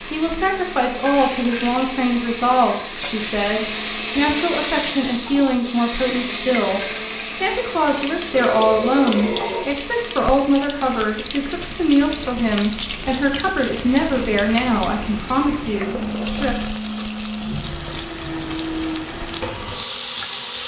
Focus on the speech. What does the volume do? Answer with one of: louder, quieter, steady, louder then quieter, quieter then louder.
steady.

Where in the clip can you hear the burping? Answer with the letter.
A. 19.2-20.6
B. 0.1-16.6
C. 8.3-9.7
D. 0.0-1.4
C.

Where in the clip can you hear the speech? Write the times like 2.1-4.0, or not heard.
0.1-16.6.